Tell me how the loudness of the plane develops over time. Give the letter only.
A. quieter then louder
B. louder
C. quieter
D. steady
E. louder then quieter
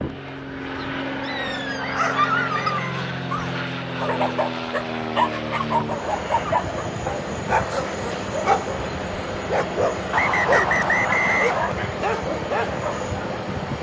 D.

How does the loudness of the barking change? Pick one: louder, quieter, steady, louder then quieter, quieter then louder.
steady.